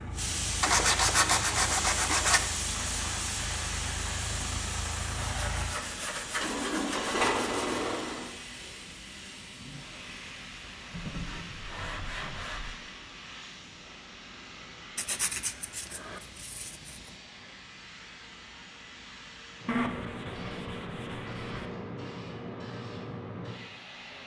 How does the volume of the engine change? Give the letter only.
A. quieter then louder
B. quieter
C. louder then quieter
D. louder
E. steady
D.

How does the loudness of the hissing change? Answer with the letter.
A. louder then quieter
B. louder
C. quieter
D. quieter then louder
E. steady
D.